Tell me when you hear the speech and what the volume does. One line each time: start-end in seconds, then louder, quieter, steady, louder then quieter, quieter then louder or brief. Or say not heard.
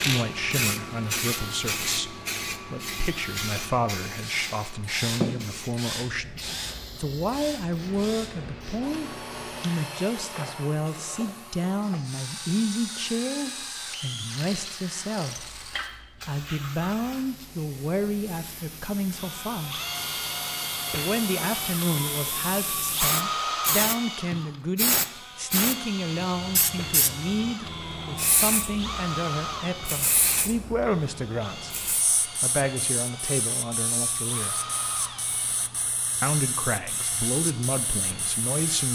0.0-19.8 steady
20.9-34.5 steady
36.2-38.9 brief.